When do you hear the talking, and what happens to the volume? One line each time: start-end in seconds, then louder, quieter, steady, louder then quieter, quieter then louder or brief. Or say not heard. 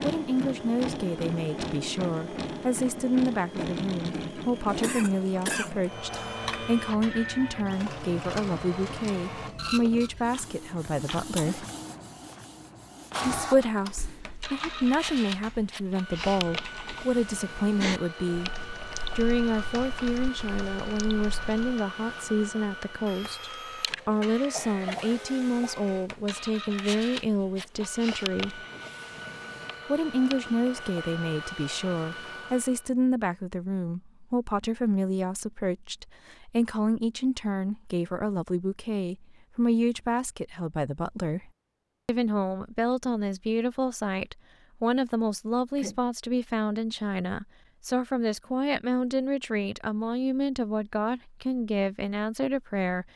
0.0-11.7 steady
13.2-28.6 steady
29.9-53.0 steady.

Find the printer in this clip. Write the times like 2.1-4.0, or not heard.
0.0-32.9.